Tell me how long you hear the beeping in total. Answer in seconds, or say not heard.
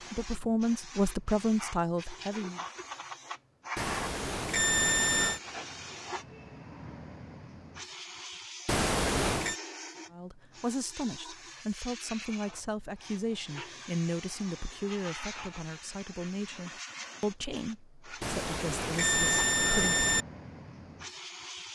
5 s.